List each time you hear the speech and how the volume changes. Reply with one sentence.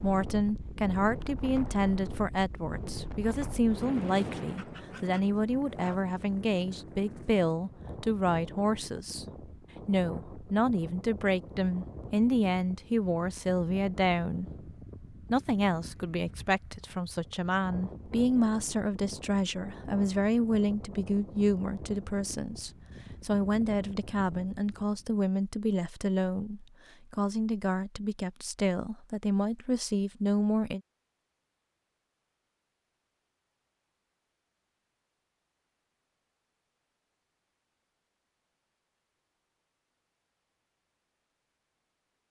The speech can be heard from 0.0 to 30.8 s, at a steady volume.